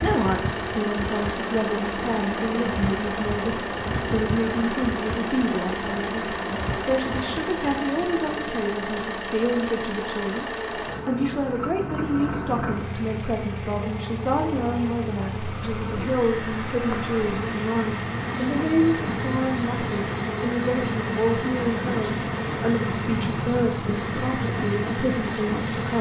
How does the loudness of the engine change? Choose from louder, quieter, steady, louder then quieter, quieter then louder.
steady.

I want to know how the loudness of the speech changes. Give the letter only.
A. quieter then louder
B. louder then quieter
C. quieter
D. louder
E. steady
E.